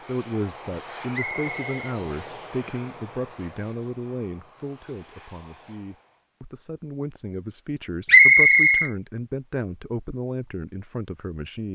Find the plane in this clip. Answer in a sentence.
The plane can be heard from 0.0 to 6.2 s.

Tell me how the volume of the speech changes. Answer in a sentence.
The volume of the speech goes down, then up.